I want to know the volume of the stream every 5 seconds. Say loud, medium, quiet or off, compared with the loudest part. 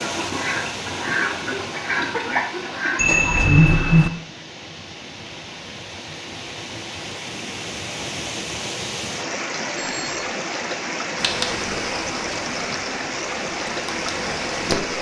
medium, loud, loud.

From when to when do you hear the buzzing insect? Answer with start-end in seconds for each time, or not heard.
11.2-14.9.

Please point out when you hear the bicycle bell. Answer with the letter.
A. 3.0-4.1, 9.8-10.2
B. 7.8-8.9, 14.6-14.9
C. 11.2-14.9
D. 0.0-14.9
A.